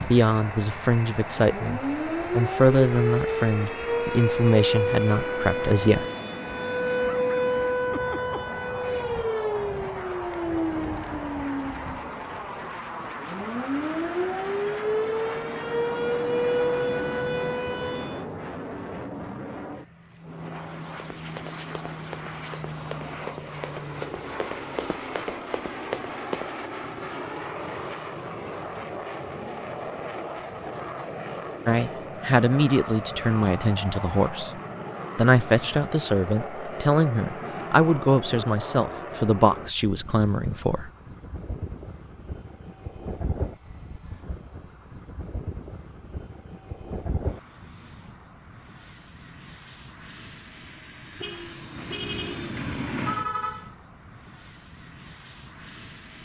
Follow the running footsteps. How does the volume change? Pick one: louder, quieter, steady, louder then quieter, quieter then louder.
louder.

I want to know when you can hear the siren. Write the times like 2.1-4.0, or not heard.
0.0-18.2.